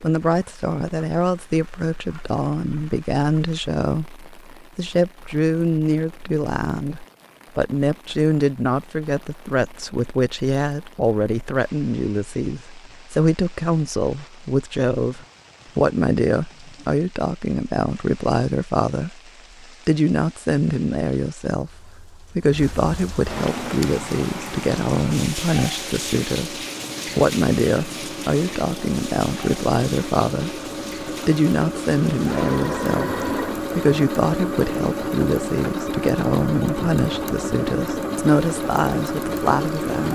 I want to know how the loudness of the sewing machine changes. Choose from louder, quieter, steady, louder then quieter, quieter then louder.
louder.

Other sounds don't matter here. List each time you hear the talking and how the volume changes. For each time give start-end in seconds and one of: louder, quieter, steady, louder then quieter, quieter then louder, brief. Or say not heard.
0.0-40.0 steady.